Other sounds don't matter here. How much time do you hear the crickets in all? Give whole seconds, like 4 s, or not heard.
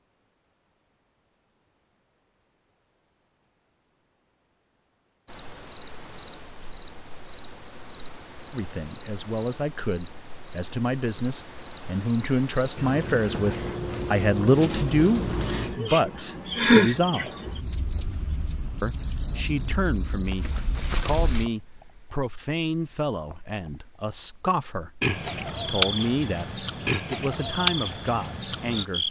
24 s.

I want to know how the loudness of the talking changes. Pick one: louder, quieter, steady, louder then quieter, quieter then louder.
louder then quieter.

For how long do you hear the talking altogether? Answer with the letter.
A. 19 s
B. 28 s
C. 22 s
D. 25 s
A.